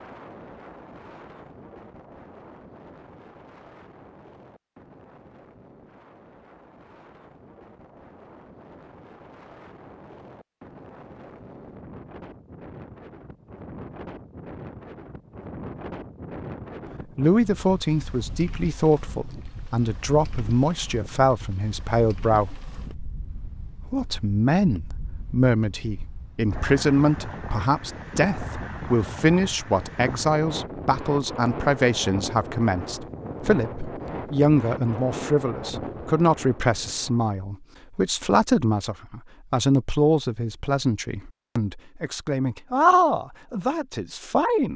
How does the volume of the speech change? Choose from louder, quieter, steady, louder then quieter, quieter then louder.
steady.